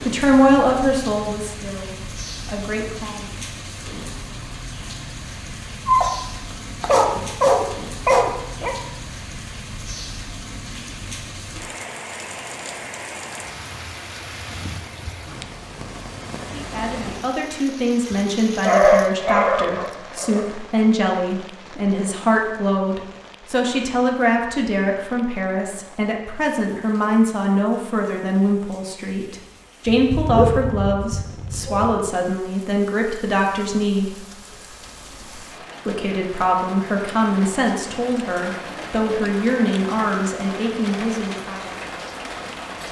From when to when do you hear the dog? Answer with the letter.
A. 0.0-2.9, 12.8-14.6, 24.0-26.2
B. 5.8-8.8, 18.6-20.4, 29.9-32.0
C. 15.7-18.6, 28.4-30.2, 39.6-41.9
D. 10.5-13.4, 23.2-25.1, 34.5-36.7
B.